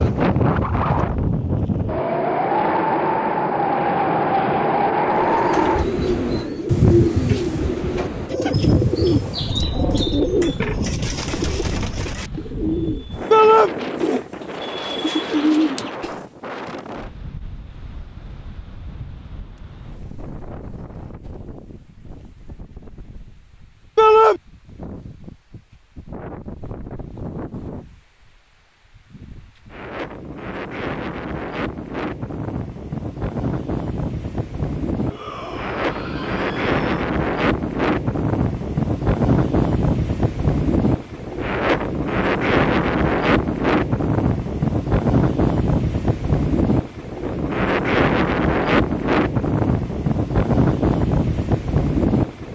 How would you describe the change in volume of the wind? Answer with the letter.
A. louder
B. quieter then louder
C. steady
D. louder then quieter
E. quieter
B.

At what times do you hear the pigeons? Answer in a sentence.
The pigeons can be heard from 5.0 to 16.1 s.